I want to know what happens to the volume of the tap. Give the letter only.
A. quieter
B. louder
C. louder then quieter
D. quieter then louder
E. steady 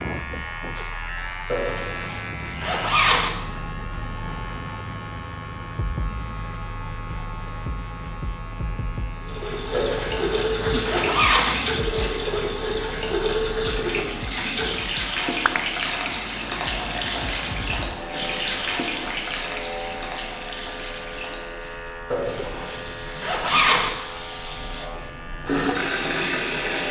D.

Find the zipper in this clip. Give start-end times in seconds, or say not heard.
1.5-3.3, 9.7-11.6, 22.1-23.9.